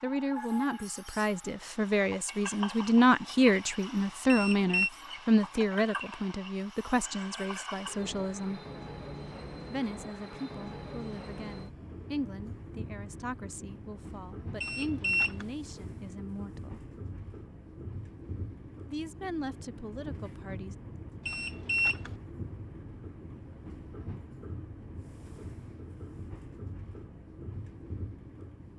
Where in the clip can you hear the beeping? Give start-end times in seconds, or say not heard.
4.2-4.9, 14.6-15.4, 21.2-22.1.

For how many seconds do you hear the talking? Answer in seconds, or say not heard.
18 s.